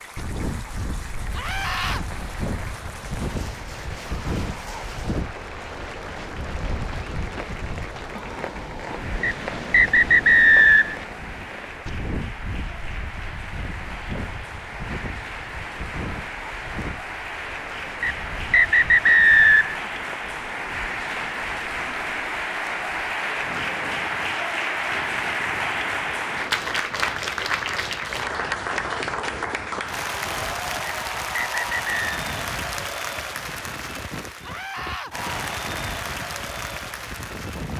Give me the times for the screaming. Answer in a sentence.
The screaming can be heard from 1.4 to 2.0 s and from 34.4 to 35.1 s.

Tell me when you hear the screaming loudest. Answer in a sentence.
The loudest moment of the screaming is at 2 seconds.